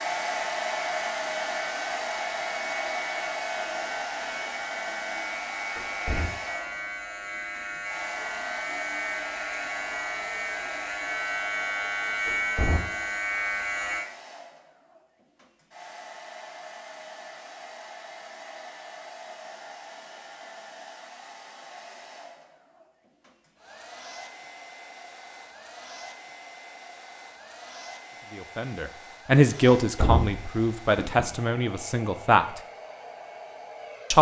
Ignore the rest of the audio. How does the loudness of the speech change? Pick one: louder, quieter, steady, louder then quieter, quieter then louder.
quieter.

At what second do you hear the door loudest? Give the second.
30 s.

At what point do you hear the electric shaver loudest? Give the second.
12 s.